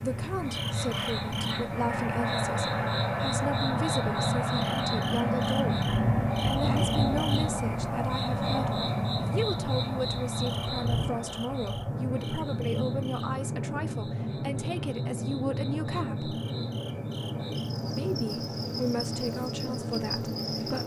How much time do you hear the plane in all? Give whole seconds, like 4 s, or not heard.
21 s.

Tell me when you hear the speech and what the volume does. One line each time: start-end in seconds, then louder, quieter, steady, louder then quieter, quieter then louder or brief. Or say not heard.
0.0-16.4 steady
17.9-20.8 brief.